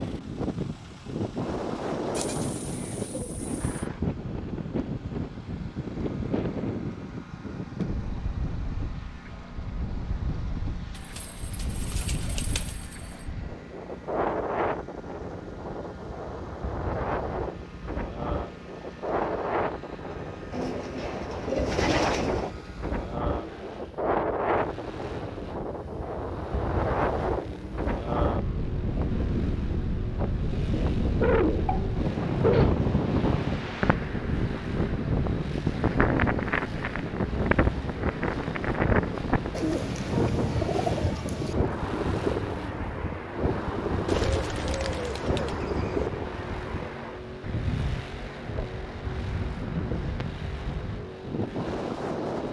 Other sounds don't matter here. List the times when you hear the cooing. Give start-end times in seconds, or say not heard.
2.1-3.9, 10.9-13.2, 20.5-22.6, 30.5-32.8, 39.5-41.5, 44.0-46.1.